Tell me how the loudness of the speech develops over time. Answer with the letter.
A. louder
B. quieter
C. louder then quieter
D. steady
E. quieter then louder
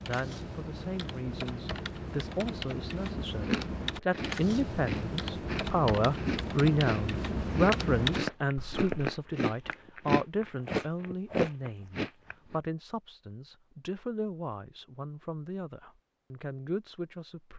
C.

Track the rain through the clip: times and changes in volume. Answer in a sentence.
You can't hear the rain here.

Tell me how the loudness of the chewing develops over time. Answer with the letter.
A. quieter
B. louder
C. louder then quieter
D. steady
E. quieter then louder
B.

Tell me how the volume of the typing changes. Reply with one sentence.
The loudness of the typing goes up.